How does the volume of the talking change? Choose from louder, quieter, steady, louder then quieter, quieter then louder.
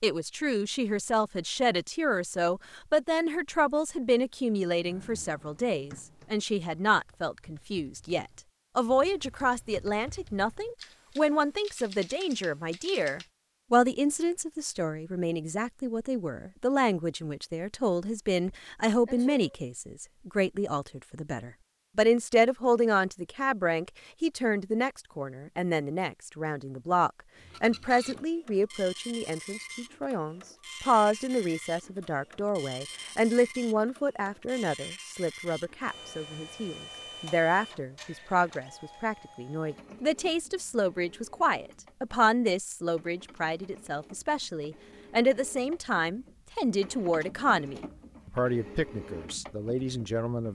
steady.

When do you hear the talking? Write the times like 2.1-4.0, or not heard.
0.0-50.4.